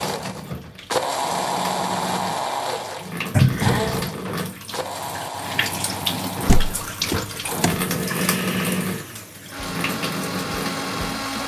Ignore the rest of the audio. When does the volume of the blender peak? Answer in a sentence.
The loudest moment of the blender is at 1 second.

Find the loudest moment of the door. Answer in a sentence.
The volume of the door peaks at 4 seconds.